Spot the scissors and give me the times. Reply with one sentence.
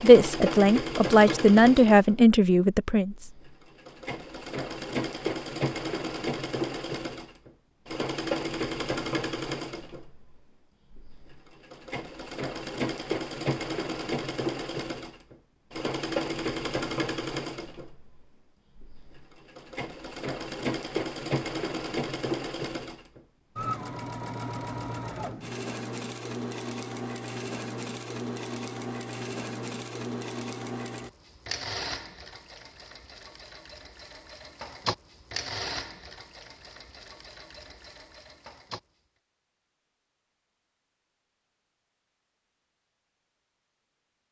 The scissors can't be heard in this clip.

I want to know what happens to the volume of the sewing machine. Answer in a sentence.
The volume of the sewing machine goes down.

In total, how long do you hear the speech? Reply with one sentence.
The speech can be heard for 3 seconds in total.